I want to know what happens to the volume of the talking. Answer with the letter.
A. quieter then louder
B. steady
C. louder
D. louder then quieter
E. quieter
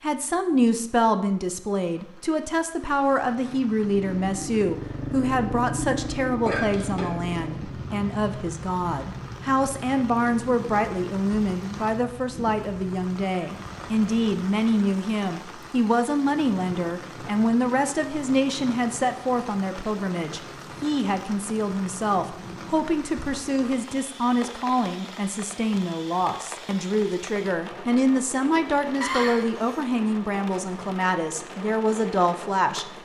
B.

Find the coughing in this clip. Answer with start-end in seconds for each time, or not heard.
6.5-7.1, 29.0-29.8.